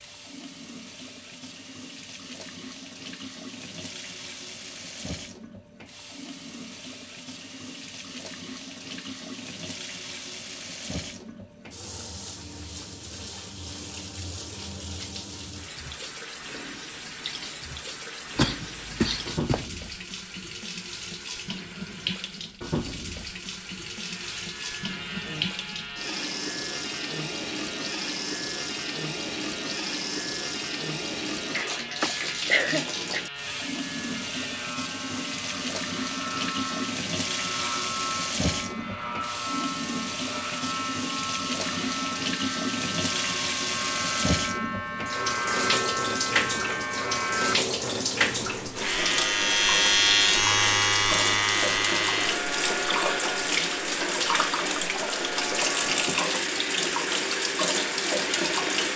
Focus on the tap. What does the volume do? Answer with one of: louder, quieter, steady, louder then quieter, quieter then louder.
louder.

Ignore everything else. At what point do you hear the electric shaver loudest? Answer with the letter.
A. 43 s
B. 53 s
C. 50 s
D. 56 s
C.